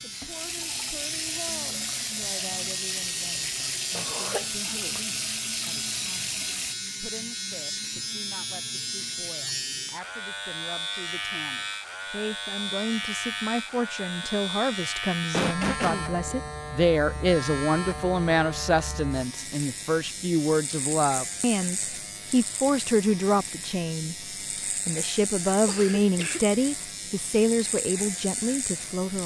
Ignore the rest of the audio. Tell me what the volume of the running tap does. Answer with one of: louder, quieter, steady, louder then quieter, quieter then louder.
steady.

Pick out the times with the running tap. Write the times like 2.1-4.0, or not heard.
0.0-6.8.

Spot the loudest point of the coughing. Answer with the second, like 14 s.
16 s.